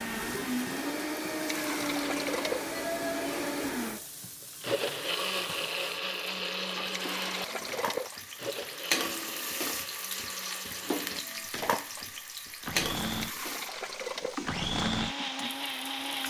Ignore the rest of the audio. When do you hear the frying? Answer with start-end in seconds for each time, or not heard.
0.0-16.2.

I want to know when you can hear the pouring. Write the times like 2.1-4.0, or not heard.
1.4-2.8, 6.8-8.4, 13.1-14.5.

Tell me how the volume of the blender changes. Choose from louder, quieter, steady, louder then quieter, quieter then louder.
quieter then louder.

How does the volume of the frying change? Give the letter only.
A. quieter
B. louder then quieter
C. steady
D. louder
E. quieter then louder
D.